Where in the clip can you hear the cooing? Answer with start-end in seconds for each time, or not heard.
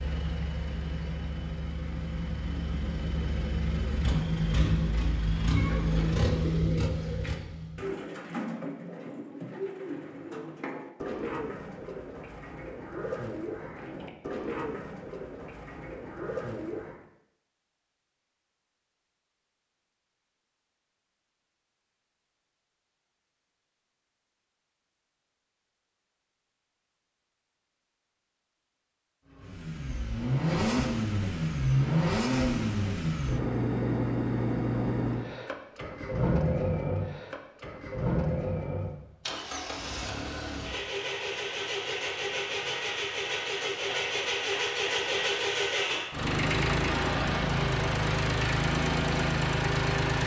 5.5-17.1.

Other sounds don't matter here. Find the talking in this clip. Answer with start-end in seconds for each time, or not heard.
not heard.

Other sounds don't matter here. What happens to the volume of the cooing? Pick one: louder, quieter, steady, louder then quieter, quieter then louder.
steady.